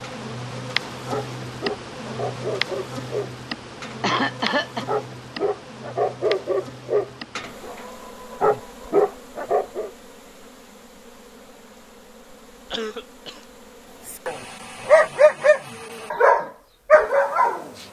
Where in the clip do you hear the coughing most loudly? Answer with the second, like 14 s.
4 s.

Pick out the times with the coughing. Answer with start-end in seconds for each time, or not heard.
4.0-4.8, 12.7-13.4.